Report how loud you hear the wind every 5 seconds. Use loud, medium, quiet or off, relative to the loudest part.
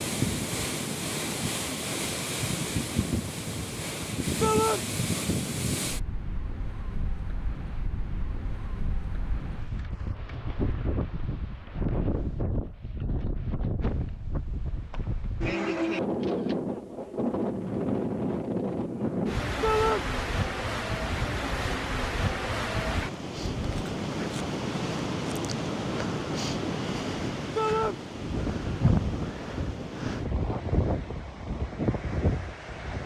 loud, medium, medium, loud, loud, loud, loud.